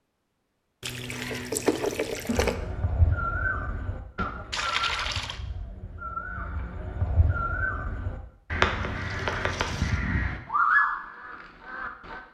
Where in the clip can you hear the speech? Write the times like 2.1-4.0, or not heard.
not heard.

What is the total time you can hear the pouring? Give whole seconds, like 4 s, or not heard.
4 s.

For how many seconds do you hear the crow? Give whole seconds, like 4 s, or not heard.
10 s.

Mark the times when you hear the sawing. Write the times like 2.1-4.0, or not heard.
not heard.